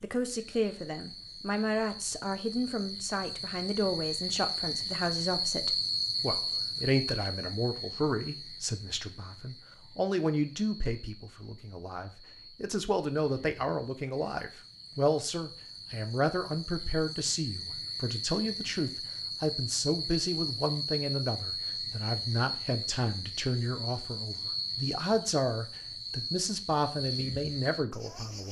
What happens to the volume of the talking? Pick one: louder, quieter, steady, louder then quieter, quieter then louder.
steady.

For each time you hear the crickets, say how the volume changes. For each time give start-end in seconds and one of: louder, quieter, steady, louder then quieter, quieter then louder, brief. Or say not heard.
0.0-28.4 quieter then louder.